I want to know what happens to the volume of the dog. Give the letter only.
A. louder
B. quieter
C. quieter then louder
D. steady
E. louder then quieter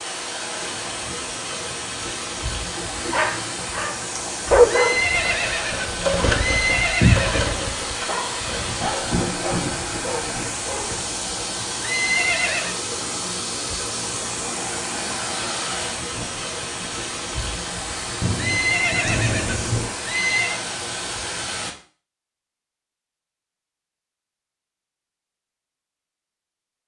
B.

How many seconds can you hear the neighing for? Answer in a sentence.
You can hear the neighing for 6 seconds altogether.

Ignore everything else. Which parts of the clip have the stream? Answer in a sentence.
The stream can be heard from 0.0 to 21.8 s.